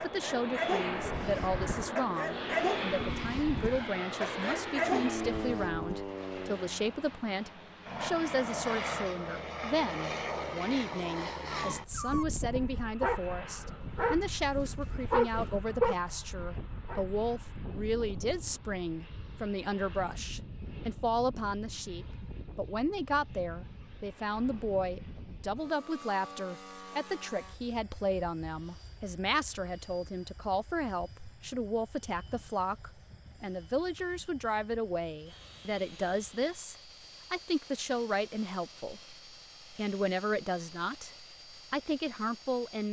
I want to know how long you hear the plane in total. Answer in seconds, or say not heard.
43 s.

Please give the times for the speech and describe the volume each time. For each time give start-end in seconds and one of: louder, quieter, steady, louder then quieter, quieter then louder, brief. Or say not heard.
0.0-42.8 steady.